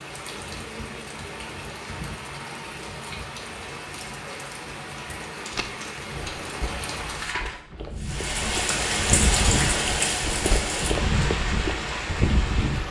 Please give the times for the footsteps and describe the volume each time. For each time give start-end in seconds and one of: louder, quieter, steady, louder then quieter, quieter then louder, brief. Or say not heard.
5.5-12.8 louder.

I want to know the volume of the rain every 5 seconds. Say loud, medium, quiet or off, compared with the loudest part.
medium, loud, loud.